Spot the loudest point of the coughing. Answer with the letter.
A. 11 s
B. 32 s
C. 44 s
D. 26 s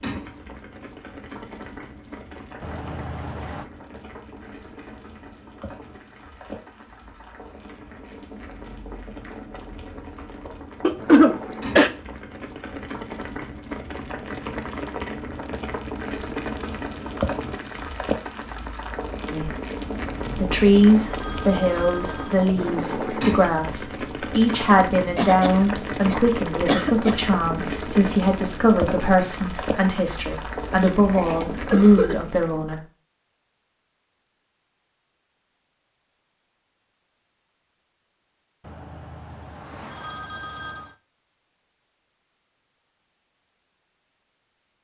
A.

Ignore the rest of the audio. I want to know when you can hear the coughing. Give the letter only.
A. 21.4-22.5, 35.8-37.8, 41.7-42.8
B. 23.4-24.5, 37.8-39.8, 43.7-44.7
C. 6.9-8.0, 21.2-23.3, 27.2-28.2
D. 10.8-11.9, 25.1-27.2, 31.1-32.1
D.